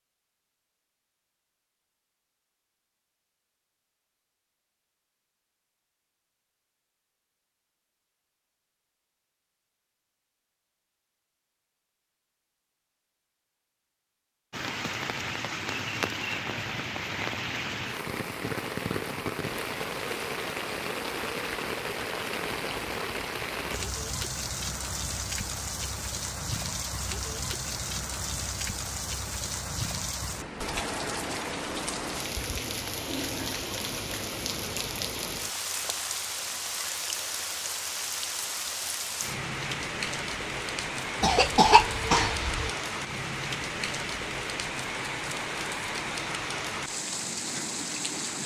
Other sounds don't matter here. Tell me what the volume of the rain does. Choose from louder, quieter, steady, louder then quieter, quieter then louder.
steady.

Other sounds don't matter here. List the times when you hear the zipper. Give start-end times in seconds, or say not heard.
not heard.